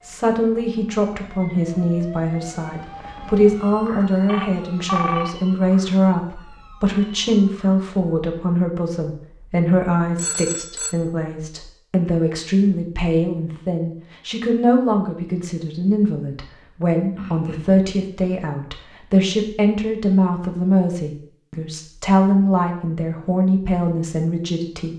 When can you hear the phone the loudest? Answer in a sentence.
The volume of the phone peaks at 5 seconds.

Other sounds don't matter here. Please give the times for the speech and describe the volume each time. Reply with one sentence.
The speech can be heard from 0.0 to 24.9 s, at a steady volume.